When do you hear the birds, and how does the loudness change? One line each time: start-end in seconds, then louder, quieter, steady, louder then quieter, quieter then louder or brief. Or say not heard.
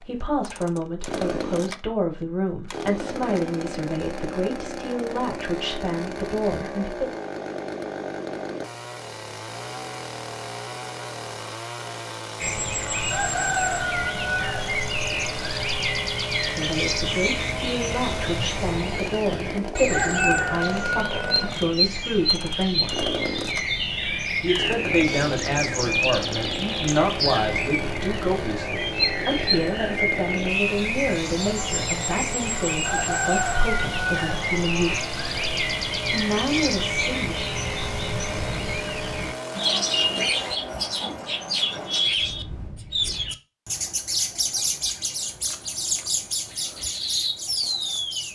12.4-48.2 steady.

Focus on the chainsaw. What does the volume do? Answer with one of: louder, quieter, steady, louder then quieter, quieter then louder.
steady.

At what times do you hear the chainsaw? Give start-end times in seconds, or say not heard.
0.0-40.6.